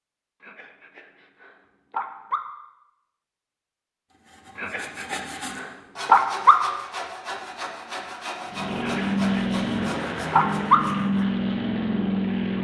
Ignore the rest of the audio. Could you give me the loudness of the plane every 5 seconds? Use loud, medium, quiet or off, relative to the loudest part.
off, loud, loud.